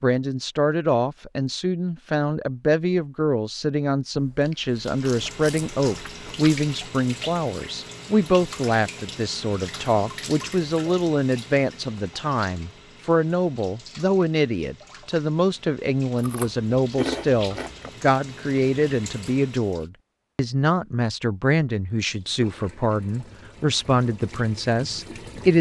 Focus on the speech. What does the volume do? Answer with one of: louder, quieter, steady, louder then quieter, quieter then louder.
steady.